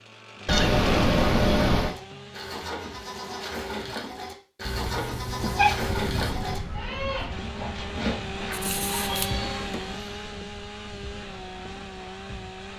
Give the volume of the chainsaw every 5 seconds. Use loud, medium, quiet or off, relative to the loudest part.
medium, loud, medium.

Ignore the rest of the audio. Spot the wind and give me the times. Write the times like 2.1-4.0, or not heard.
5.8-12.7.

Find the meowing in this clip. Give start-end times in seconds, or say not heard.
0.5-1.9, 4.7-6.3, 8.5-9.8.